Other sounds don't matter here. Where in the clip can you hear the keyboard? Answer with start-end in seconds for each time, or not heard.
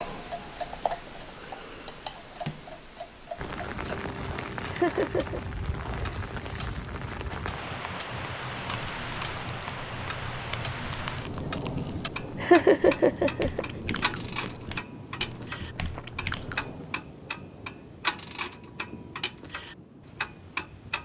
not heard.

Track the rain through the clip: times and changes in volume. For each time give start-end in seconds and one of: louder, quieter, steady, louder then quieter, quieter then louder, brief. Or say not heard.
3.4-20.9 quieter.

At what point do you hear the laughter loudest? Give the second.
13 s.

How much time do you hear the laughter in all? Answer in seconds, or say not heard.
2 s.